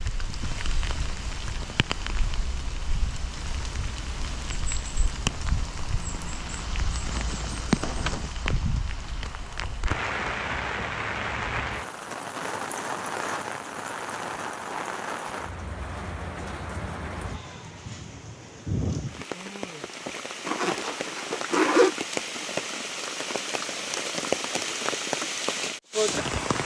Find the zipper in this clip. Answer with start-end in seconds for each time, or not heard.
20.4-21.9.